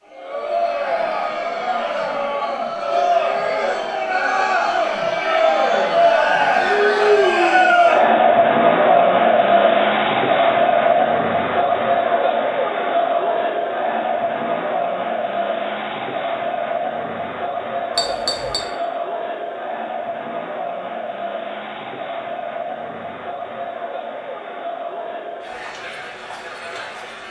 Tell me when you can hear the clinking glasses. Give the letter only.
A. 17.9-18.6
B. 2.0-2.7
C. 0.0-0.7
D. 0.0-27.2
A.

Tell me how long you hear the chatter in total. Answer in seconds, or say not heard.
27 s.